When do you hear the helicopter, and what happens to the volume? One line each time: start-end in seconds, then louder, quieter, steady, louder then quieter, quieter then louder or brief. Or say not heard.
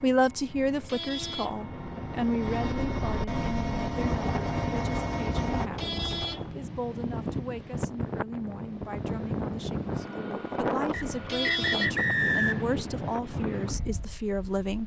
0.0-5.7 louder.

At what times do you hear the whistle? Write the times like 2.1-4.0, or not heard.
10.9-12.7.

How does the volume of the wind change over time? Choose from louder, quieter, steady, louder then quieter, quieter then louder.
steady.